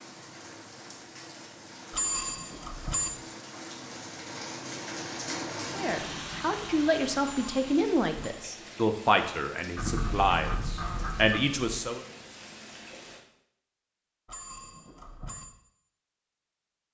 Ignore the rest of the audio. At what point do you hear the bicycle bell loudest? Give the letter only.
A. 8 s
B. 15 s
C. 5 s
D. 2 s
D.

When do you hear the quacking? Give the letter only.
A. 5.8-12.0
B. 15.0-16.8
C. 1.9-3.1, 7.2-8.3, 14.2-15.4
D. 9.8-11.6
D.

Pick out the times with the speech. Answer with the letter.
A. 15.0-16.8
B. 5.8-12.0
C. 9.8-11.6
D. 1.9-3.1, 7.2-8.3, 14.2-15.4
B.